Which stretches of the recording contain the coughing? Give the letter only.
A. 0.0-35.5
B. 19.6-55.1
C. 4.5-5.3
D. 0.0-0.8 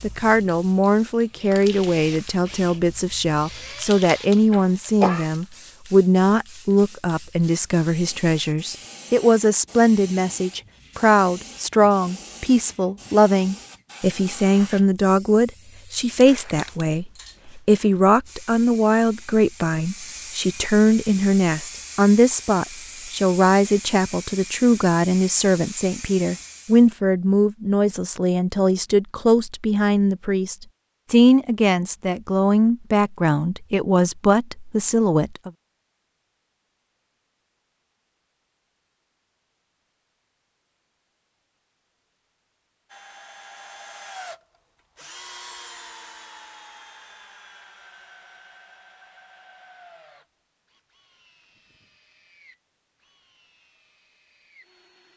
C.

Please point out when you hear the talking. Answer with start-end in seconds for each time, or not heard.
0.0-35.5.